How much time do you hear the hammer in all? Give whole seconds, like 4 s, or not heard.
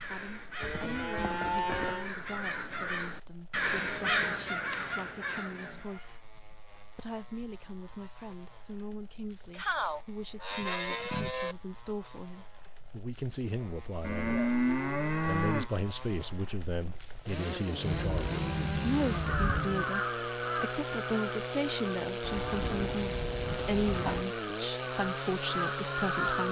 not heard.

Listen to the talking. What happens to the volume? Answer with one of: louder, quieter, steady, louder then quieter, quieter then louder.
louder.